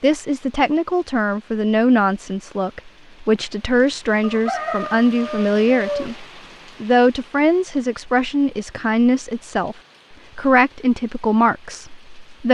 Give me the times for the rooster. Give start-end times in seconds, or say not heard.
4.2-6.2.